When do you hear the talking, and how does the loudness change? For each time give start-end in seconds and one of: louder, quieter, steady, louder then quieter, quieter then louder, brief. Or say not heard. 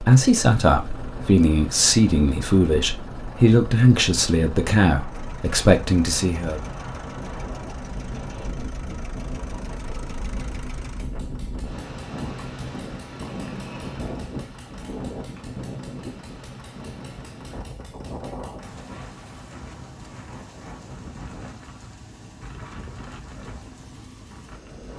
0.0-6.6 steady.